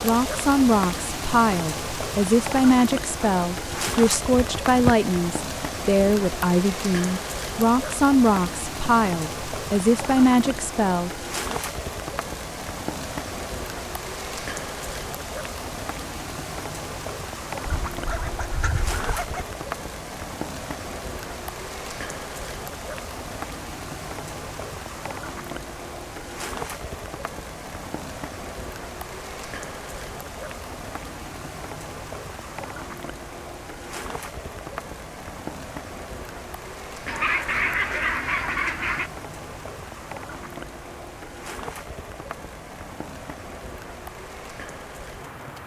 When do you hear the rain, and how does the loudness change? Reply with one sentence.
You can hear the rain from 0.0 to 45.6 s, getting quieter.